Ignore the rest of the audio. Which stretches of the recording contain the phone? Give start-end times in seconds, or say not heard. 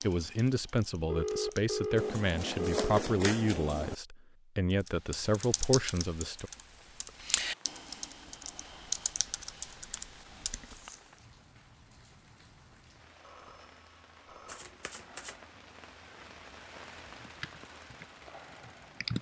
1.1-3.0, 13.2-14.7.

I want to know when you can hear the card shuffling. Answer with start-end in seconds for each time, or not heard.
1.9-4.0, 14.4-15.4.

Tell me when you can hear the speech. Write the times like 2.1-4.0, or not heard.
0.0-6.5.